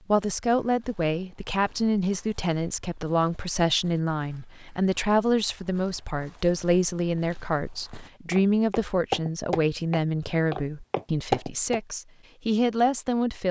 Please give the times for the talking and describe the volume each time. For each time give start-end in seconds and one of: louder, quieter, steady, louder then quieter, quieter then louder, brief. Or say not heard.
0.1-13.4 steady.